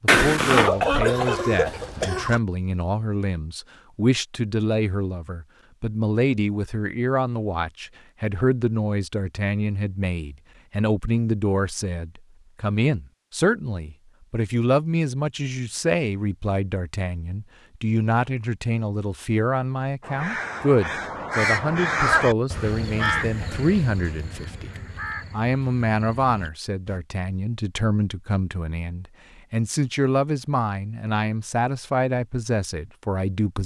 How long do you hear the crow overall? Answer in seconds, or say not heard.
7 s.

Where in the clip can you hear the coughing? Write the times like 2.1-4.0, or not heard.
0.5-2.4.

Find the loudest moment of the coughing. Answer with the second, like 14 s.
1 s.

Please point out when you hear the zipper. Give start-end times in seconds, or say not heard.
0.1-0.7.